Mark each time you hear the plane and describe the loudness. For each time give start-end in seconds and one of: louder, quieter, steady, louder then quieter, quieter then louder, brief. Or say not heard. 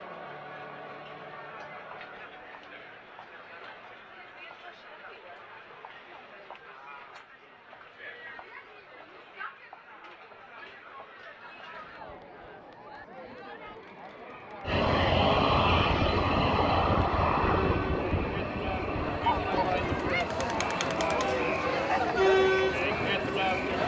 14.7-23.8 quieter.